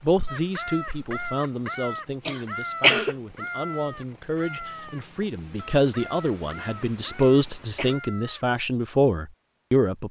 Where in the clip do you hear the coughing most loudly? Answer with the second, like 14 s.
3 s.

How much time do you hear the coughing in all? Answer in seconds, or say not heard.
2 s.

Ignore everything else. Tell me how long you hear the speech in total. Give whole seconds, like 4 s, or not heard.
10 s.